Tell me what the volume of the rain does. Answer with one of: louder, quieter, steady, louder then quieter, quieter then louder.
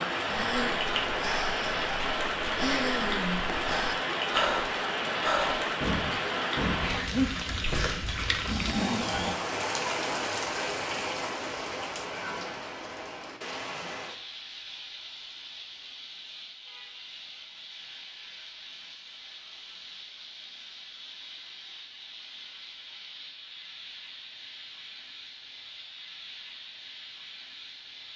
quieter.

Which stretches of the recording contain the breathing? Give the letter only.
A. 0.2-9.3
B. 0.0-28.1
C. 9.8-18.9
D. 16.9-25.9
A.